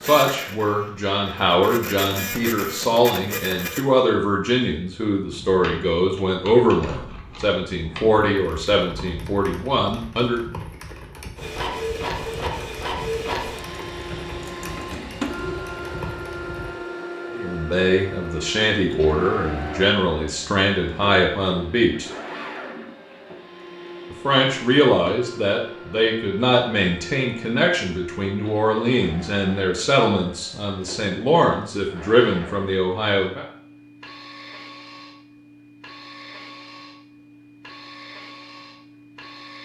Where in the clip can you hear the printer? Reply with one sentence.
You can hear the printer from 0.0 to 3.9 s and from 11.3 to 39.6 s.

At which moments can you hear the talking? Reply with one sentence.
You can hear the talking from 0.0 to 10.4 s, from 17.3 to 22.1 s and from 24.1 to 33.5 s.